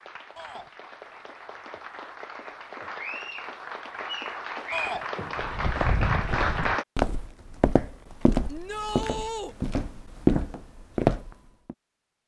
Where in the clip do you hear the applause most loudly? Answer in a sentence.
The loudest moment of the applause is at 6 seconds.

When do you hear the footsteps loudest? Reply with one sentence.
The volume of the footsteps peaks at 10 seconds.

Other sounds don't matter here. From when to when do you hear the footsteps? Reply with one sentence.
The footsteps can be heard from 5.3 to 11.8 s.